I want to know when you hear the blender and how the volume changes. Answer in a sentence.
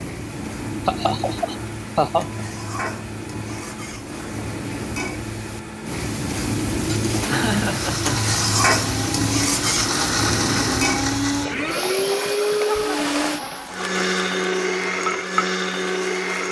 You can hear the blender from 0.1 to 16.4 s, getting louder.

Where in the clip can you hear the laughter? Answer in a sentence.
You can hear the laughter from 0.8 to 2.5 s, from 7.2 to 8.3 s and from 12.7 to 14.0 s.